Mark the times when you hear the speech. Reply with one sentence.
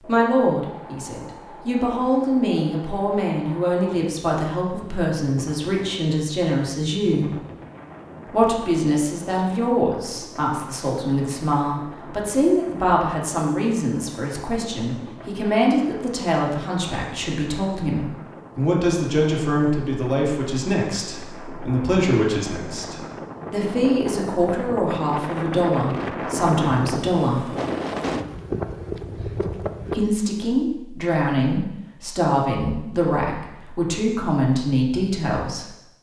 The speech can be heard from 0.1 to 7.3 s, from 8.2 to 27.5 s and from 29.9 to 35.7 s.